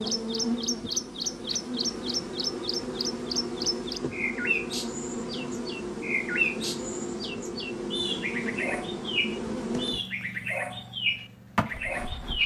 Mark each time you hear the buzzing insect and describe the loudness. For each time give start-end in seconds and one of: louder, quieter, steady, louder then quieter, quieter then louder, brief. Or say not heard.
0.0-12.4 steady.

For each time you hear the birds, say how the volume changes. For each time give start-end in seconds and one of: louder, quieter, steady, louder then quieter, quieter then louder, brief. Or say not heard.
0.0-12.4 steady.